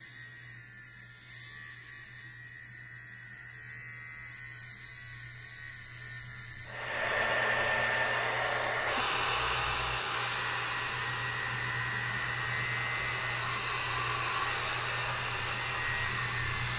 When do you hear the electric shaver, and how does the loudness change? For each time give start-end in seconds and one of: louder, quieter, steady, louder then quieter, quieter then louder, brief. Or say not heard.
0.0-16.7 louder.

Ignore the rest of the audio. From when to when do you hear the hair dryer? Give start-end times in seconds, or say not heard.
6.7-16.7.